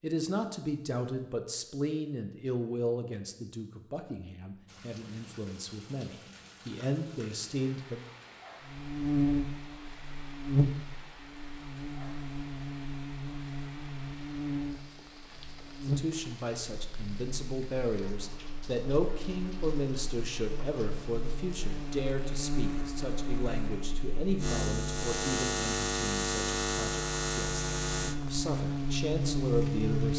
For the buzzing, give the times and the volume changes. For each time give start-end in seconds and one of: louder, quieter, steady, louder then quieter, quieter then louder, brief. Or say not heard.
8.6-30.1 quieter then louder.